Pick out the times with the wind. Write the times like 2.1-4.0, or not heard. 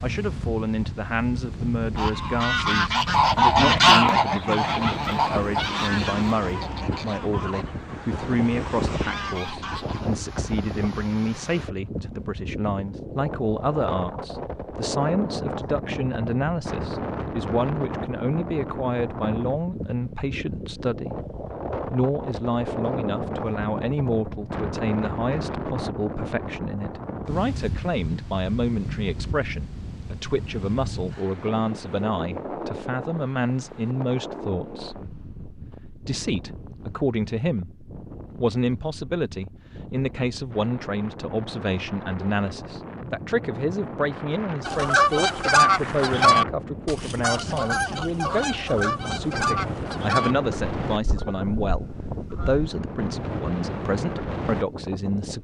0.0-55.3.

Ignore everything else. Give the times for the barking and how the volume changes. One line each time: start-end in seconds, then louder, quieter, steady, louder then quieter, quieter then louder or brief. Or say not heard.
not heard.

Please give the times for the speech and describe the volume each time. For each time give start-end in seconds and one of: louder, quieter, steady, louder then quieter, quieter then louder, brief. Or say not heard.
0.0-55.3 steady.